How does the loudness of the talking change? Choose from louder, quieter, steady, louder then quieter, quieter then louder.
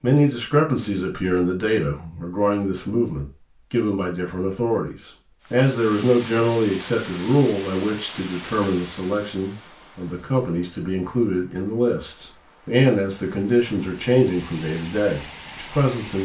steady.